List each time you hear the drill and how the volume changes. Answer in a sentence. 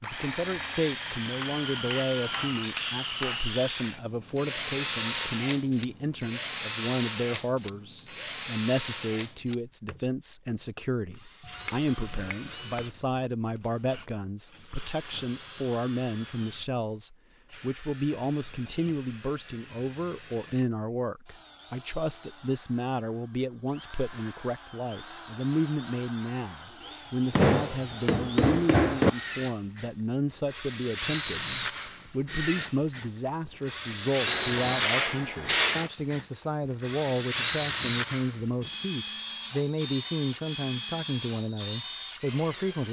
The drill can be heard from 0.0 to 42.8 s, getting quieter then louder.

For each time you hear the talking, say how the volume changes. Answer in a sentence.
You can hear the talking from 0.0 to 42.8 s, at a steady volume.